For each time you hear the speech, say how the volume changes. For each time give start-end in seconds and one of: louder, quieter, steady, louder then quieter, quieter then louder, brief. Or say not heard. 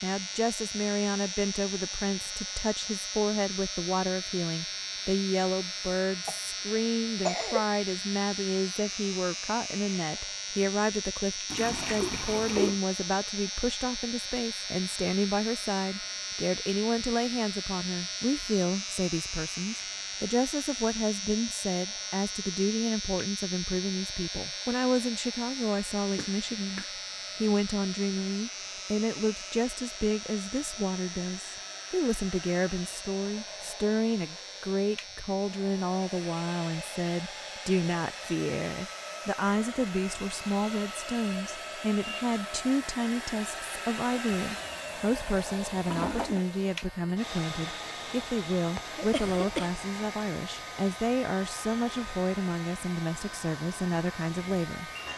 0.0-54.9 steady.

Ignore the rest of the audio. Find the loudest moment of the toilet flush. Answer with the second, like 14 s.
12 s.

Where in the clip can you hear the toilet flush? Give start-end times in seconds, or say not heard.
11.4-12.8, 44.5-46.5.